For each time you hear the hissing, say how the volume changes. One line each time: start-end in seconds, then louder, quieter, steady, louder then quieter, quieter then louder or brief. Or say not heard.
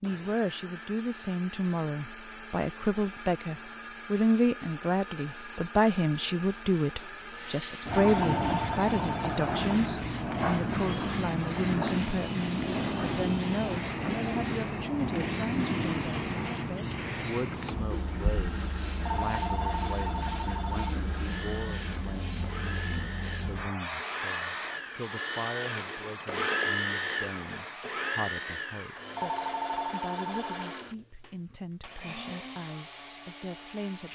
7.3-28.0 quieter.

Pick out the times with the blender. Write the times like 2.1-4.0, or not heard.
0.0-34.0.